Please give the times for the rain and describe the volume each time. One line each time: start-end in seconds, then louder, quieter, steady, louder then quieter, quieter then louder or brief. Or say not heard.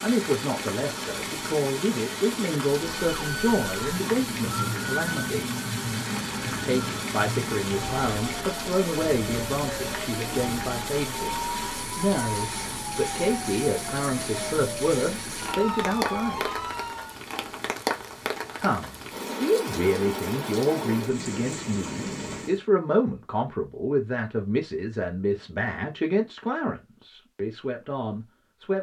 0.0-22.6 steady.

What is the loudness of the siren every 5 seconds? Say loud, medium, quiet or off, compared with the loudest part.
loud, loud, loud, loud, off, off.